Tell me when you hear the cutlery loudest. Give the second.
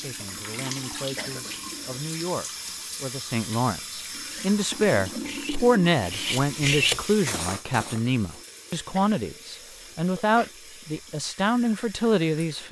7 s.